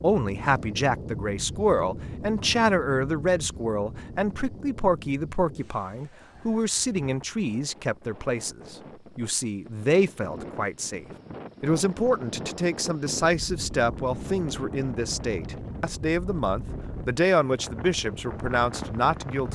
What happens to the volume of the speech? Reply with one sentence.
The volume of the speech stays about the same.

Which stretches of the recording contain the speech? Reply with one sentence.
The speech can be heard from 0.0 to 19.4 s.